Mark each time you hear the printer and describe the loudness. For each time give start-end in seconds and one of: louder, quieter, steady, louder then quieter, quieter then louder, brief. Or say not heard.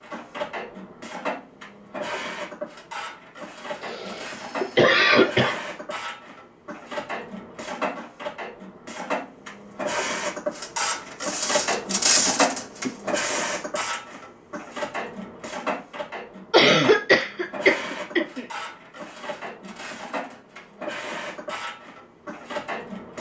0.0-23.1 louder then quieter.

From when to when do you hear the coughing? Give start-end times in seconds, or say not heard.
3.8-5.5, 12.2-13.2, 16.5-18.4.